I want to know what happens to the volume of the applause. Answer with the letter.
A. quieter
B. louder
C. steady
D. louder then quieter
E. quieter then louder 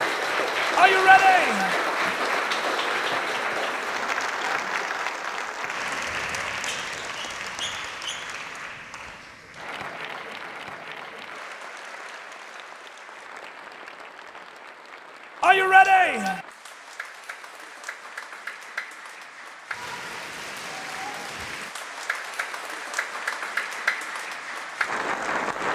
E.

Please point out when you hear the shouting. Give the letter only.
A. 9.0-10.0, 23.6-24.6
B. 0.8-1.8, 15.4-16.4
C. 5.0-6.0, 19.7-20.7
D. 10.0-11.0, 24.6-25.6
B.